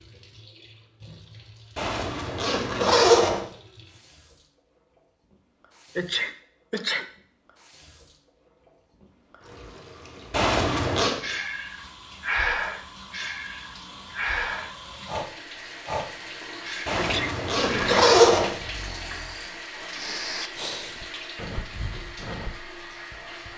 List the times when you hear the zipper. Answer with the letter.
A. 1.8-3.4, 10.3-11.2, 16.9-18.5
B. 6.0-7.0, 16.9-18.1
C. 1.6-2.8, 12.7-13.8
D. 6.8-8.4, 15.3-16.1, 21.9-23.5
A.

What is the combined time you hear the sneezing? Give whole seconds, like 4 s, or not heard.
2 s.